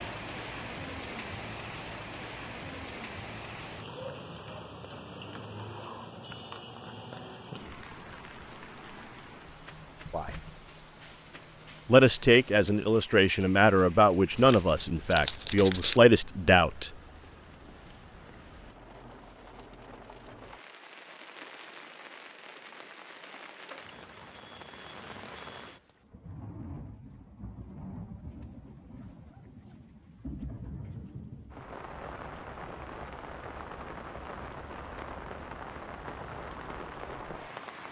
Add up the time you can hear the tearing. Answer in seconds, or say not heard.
2 s.